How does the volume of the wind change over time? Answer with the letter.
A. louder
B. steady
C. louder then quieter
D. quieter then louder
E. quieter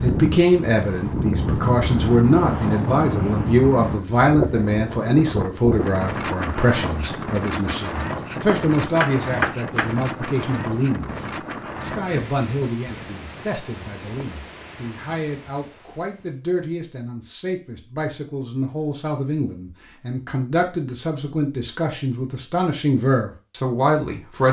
E.